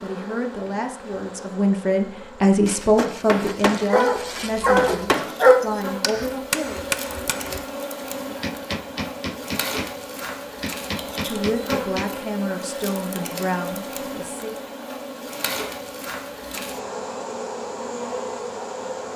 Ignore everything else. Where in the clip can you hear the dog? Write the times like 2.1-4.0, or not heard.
2.6-5.7.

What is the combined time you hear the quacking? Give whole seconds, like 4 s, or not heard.
not heard.